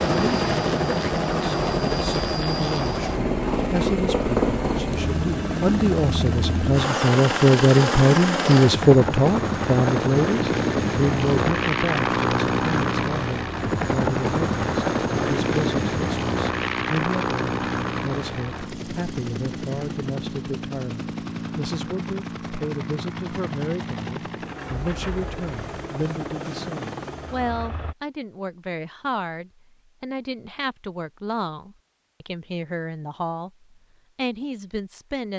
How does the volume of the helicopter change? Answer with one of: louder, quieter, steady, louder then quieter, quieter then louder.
quieter.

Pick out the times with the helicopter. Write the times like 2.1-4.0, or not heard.
0.0-27.9.